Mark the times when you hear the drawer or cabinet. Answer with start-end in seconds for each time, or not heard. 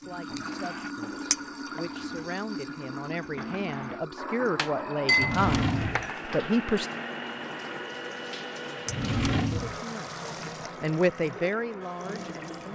0.3-1.3, 5.2-6.1, 8.8-9.8.